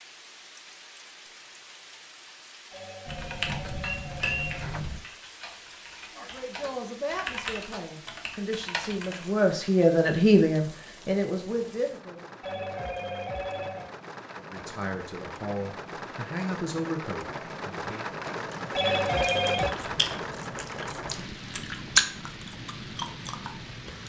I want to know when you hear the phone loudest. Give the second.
19 s.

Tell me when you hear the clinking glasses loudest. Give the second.
4 s.